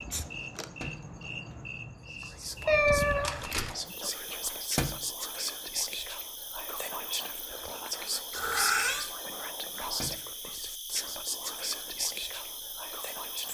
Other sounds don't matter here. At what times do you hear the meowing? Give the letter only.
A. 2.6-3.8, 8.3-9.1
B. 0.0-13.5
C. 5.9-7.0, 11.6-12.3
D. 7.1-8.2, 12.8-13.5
A.